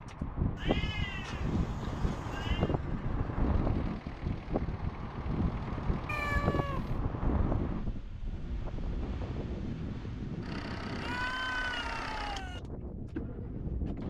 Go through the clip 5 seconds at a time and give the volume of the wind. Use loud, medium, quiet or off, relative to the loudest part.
loud, loud, medium.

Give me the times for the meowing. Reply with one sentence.
You can hear the meowing from 0.6 to 2.8 s, from 6.0 to 7.0 s and from 11.0 to 12.6 s.